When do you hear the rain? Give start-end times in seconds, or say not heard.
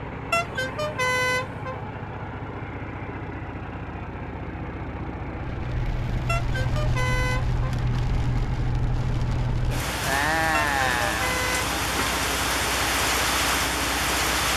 5.3-14.5.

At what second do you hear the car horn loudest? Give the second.
1 s.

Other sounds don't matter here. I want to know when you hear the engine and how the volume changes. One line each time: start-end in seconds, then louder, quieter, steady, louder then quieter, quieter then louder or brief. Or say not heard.
0.0-14.5 steady.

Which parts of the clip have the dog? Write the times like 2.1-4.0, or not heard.
not heard.